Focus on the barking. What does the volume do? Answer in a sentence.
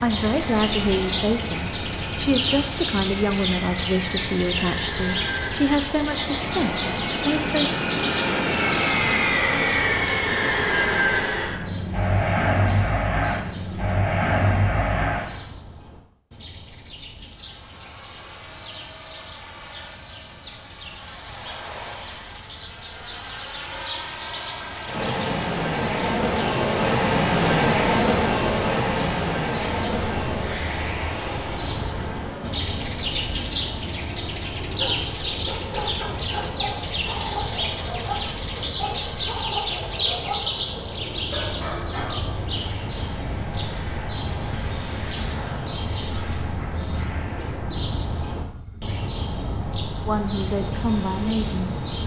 The volume of the barking stays about the same.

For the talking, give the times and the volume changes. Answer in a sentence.
You can hear the talking from 0.0 to 7.7 s, at a steady volume; and briefly from 50.0 to 51.8 s.